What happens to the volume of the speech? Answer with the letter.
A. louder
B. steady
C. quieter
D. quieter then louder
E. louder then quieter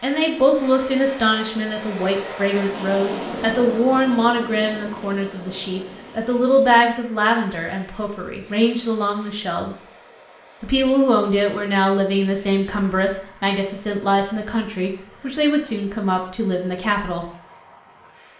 B.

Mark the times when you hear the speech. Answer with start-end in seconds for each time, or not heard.
0.0-9.8, 10.6-17.2.